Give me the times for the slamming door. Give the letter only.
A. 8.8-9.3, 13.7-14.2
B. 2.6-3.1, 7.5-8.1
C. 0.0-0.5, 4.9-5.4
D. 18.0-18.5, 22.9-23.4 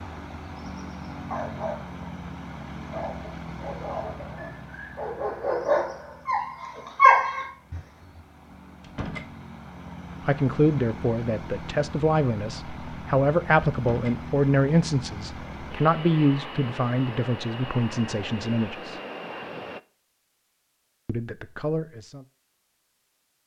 A.